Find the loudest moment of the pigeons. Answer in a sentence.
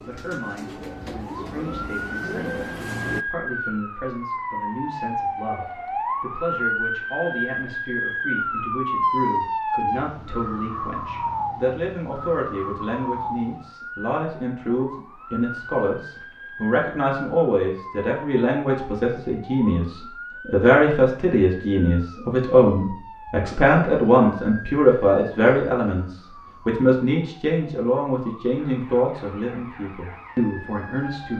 The loudest moment of the pigeons is at 3 seconds.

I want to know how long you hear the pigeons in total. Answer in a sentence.
You can hear the pigeons for 3 seconds altogether.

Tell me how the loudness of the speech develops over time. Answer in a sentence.
The loudness of the speech goes up.